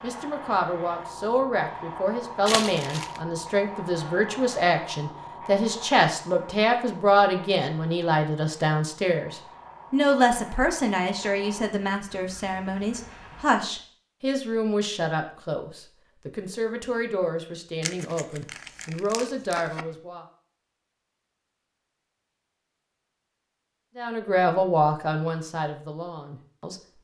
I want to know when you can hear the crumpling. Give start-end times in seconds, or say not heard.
2.5-3.2, 17.8-19.9.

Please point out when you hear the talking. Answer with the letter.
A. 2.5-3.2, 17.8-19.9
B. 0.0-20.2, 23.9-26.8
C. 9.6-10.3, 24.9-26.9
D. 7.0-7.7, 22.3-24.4
B.